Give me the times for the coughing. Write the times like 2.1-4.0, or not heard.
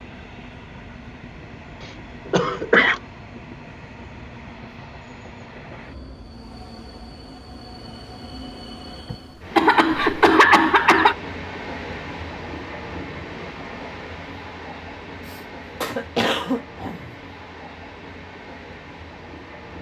2.3-3.0, 9.1-11.2, 15.2-17.1.